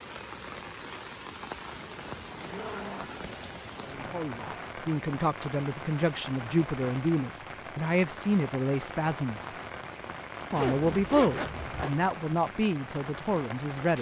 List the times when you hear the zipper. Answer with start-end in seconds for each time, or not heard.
2.4-3.3, 4.0-4.6, 10.6-11.9.